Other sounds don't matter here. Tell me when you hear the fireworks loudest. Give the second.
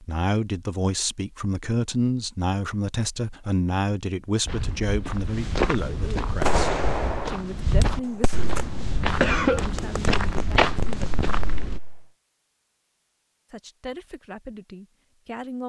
7 s.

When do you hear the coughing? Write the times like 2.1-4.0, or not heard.
9.2-9.7.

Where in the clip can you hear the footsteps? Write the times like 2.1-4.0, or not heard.
4.5-11.8.